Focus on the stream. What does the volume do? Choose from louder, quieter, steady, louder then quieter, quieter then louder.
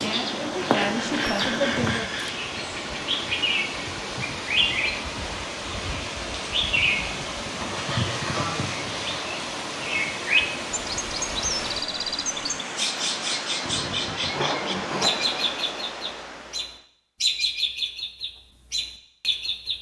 steady.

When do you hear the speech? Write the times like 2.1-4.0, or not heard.
0.0-2.0.